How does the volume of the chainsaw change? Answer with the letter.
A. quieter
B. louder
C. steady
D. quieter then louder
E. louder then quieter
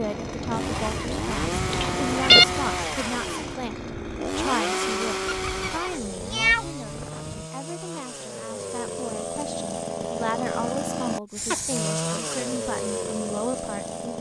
D.